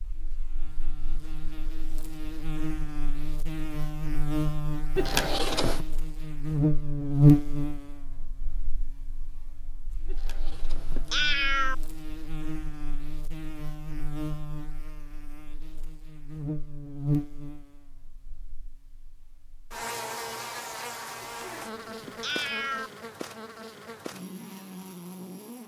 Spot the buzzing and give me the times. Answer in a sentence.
You can hear the buzzing from 0.0 to 25.6 s.